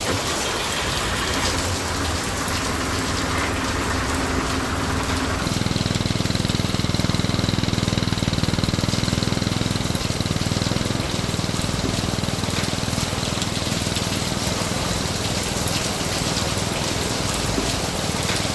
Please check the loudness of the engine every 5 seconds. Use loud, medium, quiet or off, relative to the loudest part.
loud, loud, loud, medium.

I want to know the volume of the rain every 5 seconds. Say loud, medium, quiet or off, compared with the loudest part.
loud, medium, loud, loud.